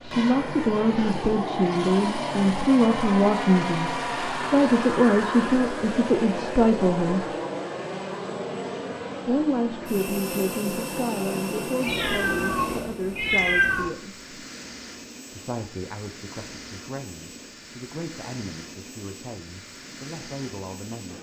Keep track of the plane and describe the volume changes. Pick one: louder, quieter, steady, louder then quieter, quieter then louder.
quieter.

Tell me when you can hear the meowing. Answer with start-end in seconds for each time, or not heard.
11.8-13.9.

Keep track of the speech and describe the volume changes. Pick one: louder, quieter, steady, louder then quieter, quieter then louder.
quieter.